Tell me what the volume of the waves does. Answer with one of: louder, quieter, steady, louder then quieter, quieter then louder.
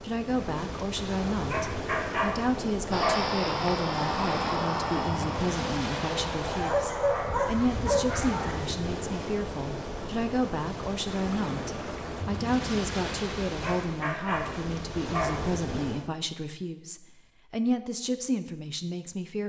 steady.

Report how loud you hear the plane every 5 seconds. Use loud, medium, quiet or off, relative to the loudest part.
loud, medium, off, off.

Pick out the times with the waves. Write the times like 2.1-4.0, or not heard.
0.0-16.1.